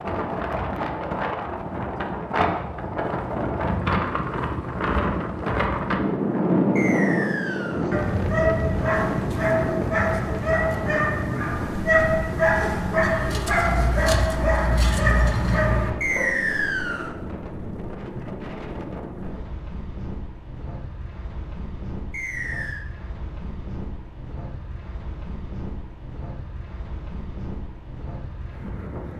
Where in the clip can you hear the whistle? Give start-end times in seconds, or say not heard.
6.8-7.8, 16.0-17.1, 22.1-22.9.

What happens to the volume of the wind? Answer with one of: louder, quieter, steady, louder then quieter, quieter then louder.
quieter.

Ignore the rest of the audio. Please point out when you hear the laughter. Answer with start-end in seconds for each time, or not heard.
not heard.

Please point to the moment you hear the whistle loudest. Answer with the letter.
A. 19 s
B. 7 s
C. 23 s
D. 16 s
D.